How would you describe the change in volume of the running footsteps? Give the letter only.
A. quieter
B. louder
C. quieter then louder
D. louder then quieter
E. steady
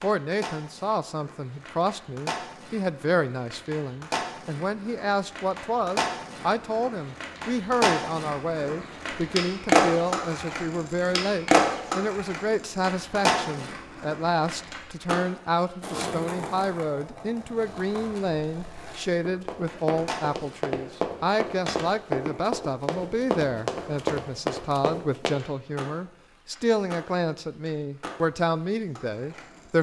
B.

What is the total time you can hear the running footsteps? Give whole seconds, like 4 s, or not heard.
6 s.